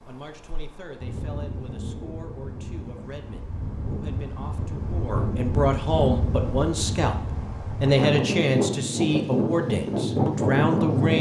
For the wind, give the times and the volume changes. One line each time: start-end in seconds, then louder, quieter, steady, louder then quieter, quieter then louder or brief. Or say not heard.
0.0-11.1 louder.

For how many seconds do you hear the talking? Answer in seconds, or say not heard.
11 s.